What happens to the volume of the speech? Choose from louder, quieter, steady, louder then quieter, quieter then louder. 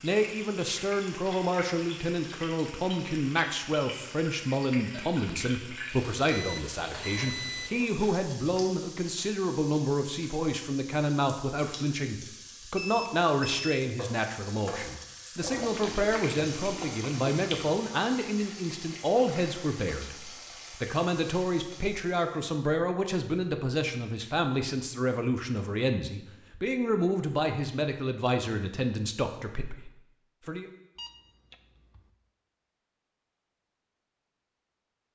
steady.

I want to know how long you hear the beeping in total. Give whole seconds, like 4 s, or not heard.
4 s.